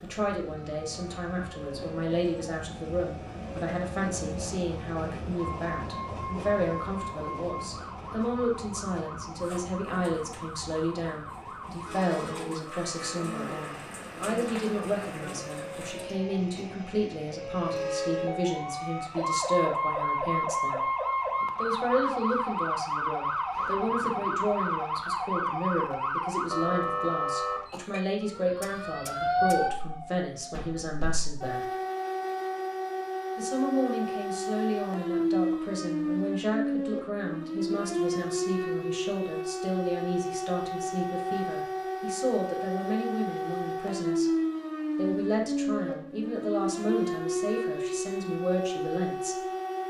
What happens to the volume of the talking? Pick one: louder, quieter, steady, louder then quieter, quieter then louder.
steady.